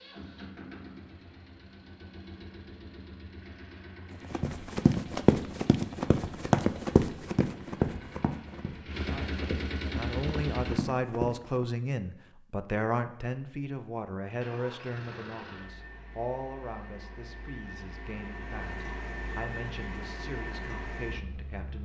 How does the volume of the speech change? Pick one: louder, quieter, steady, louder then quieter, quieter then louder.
quieter.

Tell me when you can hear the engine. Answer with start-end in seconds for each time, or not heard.
0.0-10.8, 14.4-21.8.